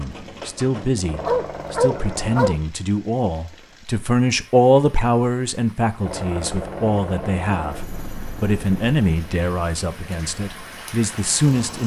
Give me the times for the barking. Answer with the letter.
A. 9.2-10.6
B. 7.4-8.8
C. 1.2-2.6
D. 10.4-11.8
C.